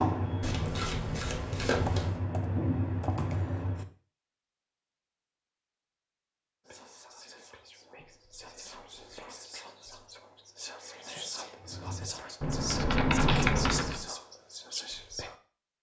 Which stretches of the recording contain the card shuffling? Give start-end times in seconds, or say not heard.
0.4-2.2.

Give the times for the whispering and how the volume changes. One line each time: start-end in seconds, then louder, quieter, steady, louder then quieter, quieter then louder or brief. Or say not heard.
6.7-15.3 louder.